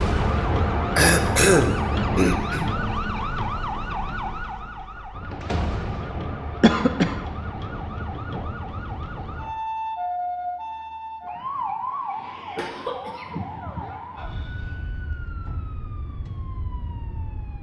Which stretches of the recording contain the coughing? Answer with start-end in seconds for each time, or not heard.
0.9-2.7, 6.6-7.2, 12.6-13.4.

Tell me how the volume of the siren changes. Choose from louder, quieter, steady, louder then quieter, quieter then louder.
quieter.